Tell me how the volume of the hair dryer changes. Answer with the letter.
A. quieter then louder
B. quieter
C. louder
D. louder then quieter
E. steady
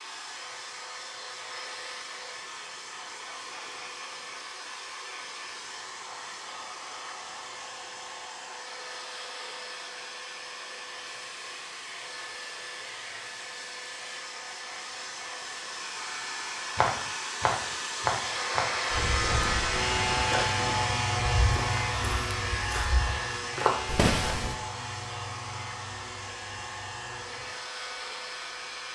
D.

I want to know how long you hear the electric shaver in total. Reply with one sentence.
You can hear the electric shaver for 10 seconds altogether.